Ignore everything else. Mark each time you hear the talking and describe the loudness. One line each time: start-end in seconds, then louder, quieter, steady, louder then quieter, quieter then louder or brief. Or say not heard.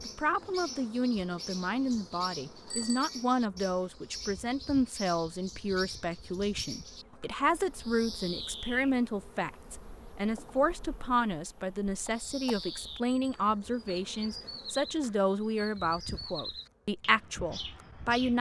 0.0-18.3 steady.